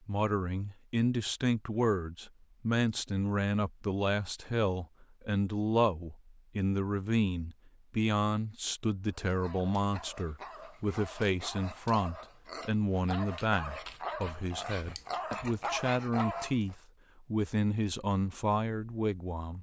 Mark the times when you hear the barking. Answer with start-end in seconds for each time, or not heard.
9.1-16.8.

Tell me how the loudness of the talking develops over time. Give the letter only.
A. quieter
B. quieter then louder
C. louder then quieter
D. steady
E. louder
D.